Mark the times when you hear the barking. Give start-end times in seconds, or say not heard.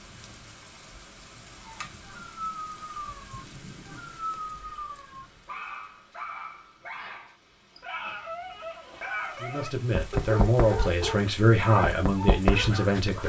1.6-13.2.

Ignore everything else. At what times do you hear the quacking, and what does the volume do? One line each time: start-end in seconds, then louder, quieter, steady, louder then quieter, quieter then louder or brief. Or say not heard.
not heard.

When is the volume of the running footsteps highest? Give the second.
12 s.